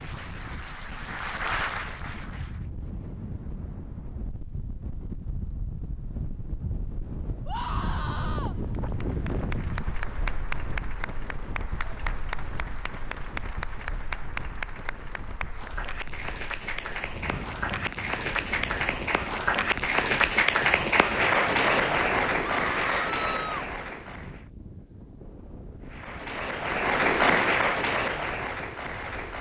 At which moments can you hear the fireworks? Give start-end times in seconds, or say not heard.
not heard.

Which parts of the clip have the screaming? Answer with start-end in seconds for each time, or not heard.
7.5-8.6, 22.4-23.7.